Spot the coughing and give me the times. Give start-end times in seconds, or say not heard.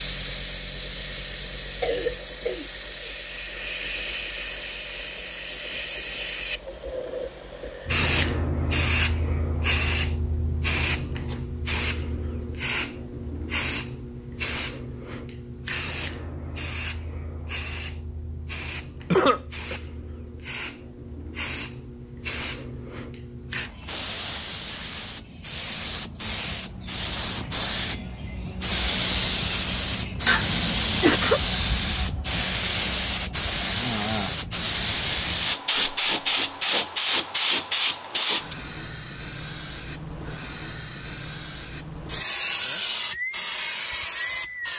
1.8-3.1, 19.1-19.8, 30.2-31.4.